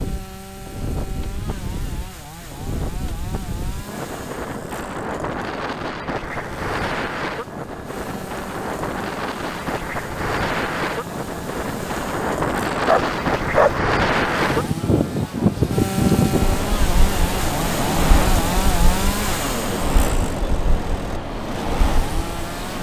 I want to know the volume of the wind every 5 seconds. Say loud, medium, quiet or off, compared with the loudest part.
medium, medium, loud, loud, medium.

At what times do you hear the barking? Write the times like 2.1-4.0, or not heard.
12.8-13.8.